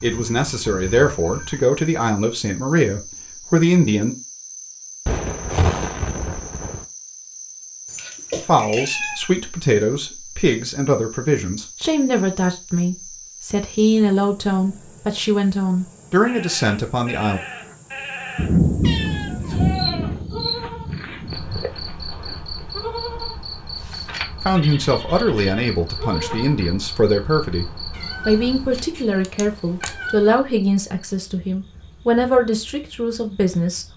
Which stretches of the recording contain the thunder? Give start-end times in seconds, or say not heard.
5.0-6.8, 18.4-21.7.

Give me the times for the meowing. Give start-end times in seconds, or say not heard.
7.8-9.3, 18.8-19.6, 27.9-30.4.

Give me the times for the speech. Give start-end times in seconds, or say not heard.
0.0-4.2, 8.4-17.4, 24.4-33.9.